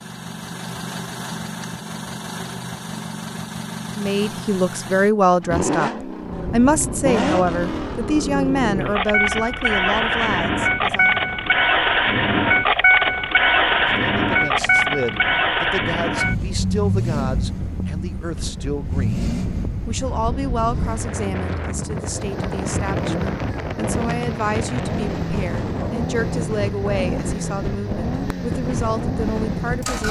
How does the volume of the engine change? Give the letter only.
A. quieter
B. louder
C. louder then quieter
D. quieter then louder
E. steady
C.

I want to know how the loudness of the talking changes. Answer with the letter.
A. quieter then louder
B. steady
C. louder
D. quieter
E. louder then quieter
D.